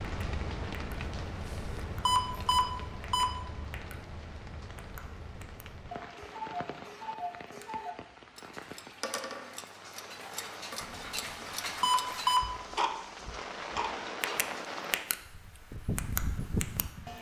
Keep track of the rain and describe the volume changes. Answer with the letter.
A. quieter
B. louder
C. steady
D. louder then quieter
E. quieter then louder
E.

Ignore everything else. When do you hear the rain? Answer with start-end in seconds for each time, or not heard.
0.0-17.1.